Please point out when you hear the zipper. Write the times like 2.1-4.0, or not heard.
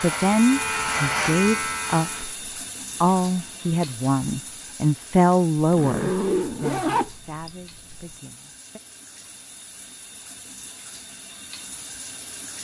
5.5-8.2.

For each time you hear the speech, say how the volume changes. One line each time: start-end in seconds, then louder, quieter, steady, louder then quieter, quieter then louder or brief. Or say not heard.
0.0-2.3 brief
3.0-8.8 louder then quieter.